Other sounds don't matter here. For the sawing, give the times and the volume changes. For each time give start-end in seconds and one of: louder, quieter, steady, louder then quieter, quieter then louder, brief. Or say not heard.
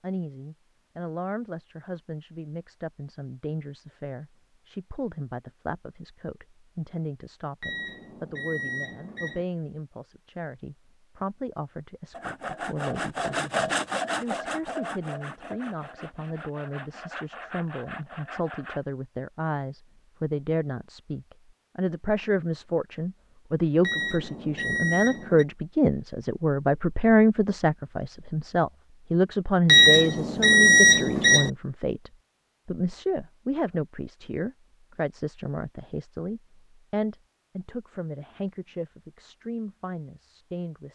12.1-18.8 quieter.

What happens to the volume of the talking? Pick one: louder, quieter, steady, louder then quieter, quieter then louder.
louder then quieter.